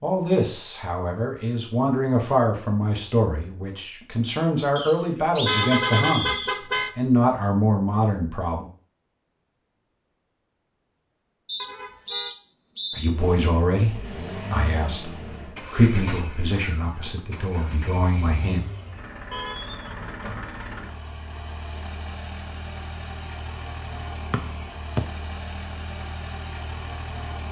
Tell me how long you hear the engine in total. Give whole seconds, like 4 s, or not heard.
14 s.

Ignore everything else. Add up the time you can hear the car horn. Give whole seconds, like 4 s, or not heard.
3 s.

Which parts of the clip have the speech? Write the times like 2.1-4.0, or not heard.
0.0-8.7, 12.9-18.6.